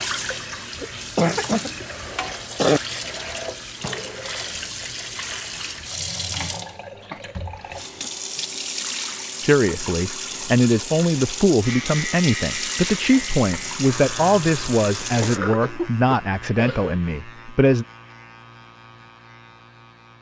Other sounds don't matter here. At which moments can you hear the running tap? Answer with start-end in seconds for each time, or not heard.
0.0-15.4.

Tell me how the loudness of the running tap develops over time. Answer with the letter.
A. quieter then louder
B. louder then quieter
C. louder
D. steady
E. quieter
D.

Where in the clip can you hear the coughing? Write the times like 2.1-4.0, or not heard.
0.8-2.8, 7.1-8.1, 15.2-16.9.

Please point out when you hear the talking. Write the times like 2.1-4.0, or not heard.
9.4-17.9.